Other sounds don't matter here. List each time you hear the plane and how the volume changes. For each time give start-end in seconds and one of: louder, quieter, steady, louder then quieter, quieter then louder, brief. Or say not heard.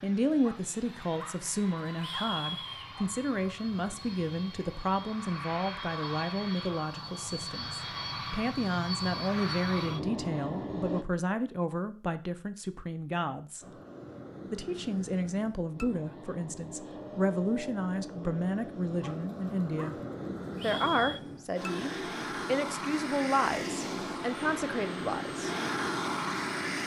0.0-11.1 louder
13.6-26.8 louder.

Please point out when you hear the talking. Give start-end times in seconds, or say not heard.
0.0-13.7, 14.5-19.9, 20.6-25.5.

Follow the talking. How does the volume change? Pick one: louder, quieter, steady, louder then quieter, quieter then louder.
steady.